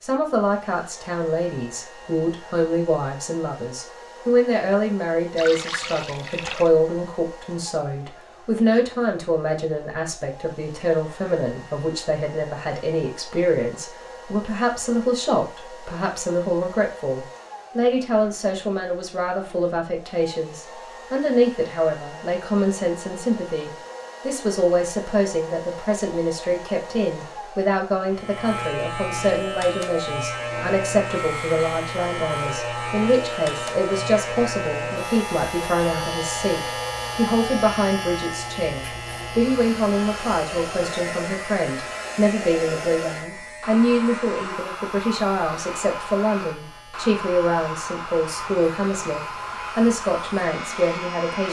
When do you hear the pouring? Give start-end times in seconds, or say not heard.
5.3-6.7.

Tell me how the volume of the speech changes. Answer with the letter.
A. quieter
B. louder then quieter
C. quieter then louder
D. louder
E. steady
E.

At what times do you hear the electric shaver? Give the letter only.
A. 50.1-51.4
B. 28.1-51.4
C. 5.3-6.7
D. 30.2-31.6
B.